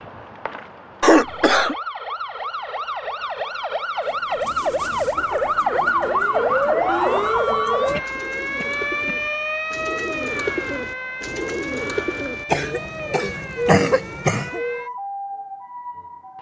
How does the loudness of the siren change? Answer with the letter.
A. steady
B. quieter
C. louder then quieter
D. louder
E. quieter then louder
C.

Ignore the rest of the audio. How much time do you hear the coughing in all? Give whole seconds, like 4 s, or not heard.
4 s.